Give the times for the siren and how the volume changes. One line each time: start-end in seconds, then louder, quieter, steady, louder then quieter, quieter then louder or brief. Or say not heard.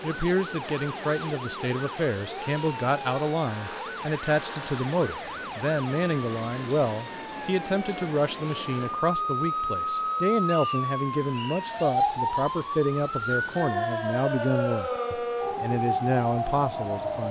0.0-17.2 louder.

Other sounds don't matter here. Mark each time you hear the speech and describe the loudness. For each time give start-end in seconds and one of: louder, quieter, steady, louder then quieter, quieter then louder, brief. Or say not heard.
0.0-17.2 steady.